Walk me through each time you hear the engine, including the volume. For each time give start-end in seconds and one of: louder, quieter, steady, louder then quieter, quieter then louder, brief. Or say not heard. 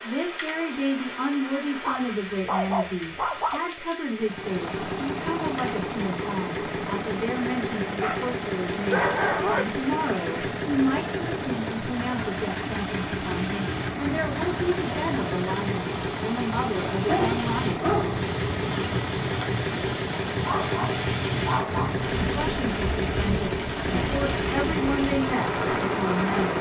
4.2-26.5 steady.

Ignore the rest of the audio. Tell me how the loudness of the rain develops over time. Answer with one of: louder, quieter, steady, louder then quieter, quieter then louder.
louder.